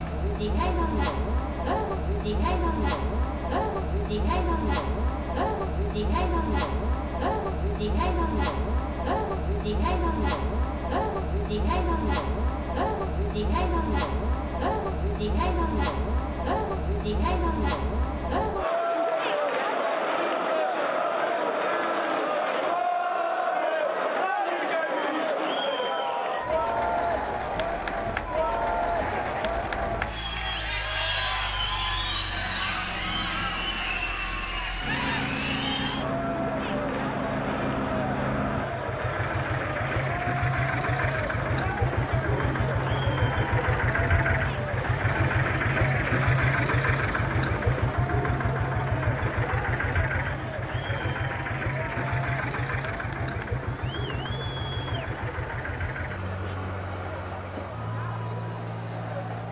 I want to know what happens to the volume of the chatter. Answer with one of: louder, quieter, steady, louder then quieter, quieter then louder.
quieter.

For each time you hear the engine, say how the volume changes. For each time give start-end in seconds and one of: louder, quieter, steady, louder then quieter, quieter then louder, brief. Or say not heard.
27.5-59.4 louder then quieter.